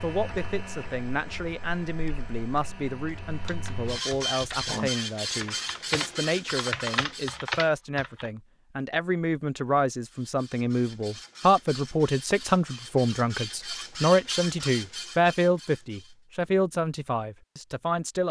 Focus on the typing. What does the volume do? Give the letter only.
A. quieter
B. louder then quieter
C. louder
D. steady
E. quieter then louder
C.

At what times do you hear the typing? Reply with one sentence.
You can hear the typing from 3.3 to 8.3 s.